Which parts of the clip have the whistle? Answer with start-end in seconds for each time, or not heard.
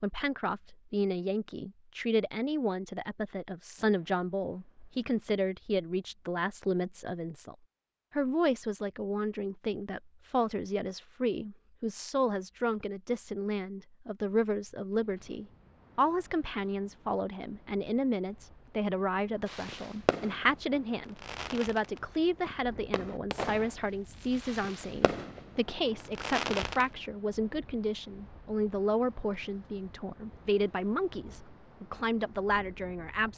not heard.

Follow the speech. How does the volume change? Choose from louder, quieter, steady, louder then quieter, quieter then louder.
steady.